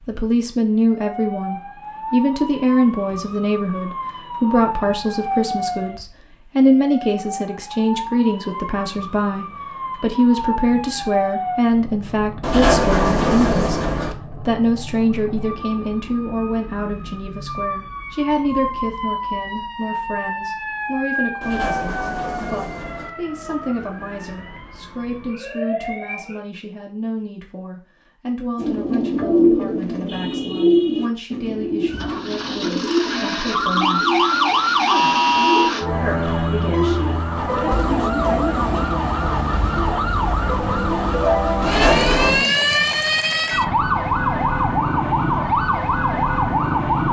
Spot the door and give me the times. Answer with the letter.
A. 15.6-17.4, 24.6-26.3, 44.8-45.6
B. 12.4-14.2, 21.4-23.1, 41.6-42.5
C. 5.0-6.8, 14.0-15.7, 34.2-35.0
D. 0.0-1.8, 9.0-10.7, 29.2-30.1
B.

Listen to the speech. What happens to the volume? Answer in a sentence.
The loudness of the speech goes down.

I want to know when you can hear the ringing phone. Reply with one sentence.
You can't hear the ringing phone here.